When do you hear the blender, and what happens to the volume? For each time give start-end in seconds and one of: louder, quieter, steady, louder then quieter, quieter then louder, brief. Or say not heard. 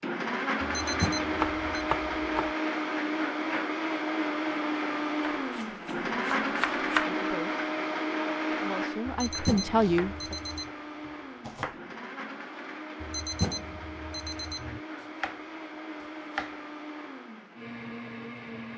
0.0-18.7 quieter.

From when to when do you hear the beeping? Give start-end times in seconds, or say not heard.
0.6-1.9, 9.1-10.7, 13.0-14.8.